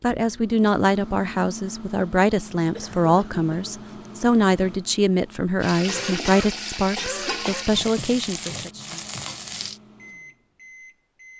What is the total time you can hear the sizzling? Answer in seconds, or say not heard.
4 s.